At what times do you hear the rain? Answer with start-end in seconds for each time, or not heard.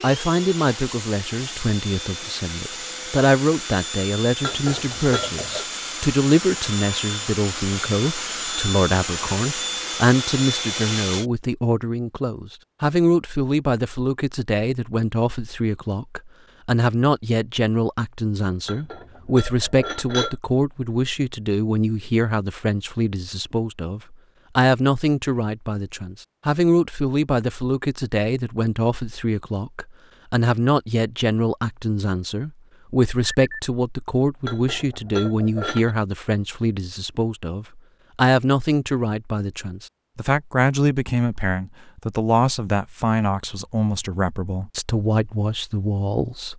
not heard.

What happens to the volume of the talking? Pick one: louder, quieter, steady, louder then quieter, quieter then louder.
steady.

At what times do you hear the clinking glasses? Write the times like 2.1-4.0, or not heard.
4.4-5.7, 18.6-20.4, 34.5-36.0.